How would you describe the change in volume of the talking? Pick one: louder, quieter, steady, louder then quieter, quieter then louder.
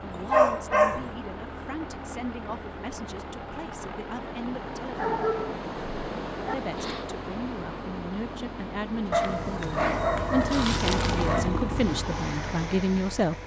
louder.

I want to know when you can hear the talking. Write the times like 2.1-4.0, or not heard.
0.0-5.3, 6.5-13.4.